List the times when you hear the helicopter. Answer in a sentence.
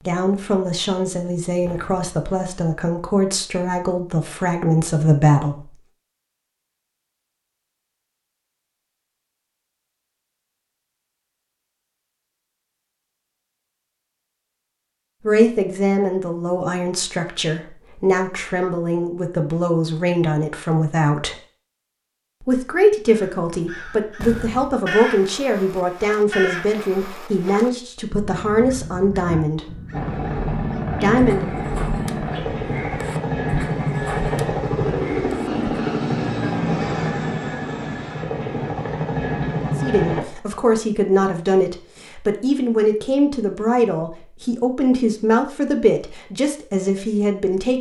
The helicopter can be heard from 29.9 to 40.2 s.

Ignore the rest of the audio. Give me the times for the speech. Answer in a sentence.
You can hear the speech from 0.1 to 5.7 s, from 15.2 to 21.4 s, from 22.4 to 29.8 s, from 31.0 to 31.6 s and from 39.8 to 47.7 s.